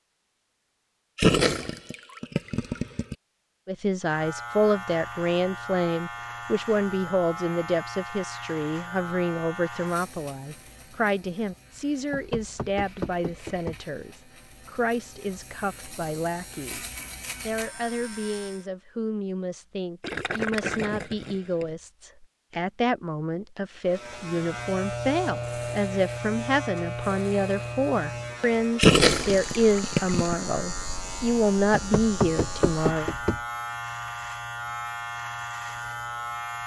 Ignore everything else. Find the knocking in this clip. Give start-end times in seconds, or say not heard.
12.1-13.8, 31.7-33.4.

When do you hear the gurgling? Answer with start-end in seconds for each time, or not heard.
1.1-3.1, 20.0-21.6, 28.8-30.4.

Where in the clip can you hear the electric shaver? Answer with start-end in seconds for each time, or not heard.
4.0-18.6, 23.9-36.6.